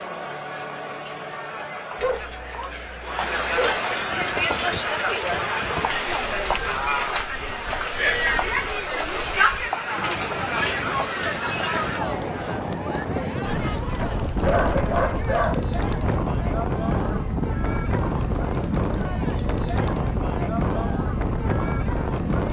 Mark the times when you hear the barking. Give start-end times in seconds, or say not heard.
1.9-3.8, 14.0-15.6.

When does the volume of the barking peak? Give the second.
15 s.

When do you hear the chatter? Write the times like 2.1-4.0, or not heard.
0.0-22.4.